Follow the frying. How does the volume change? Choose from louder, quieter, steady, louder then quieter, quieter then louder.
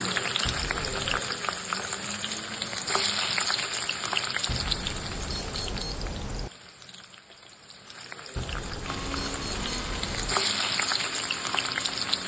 quieter then louder.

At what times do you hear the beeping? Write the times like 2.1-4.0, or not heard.
0.5-1.2, 4.5-6.5, 8.3-10.3.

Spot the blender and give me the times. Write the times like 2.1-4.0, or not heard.
8.8-12.2.